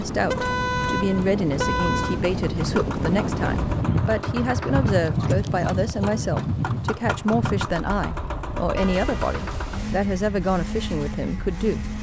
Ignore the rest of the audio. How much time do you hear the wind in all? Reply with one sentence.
The wind can be heard for 12 seconds in total.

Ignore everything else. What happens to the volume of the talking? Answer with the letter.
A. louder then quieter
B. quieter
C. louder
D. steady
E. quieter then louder
D.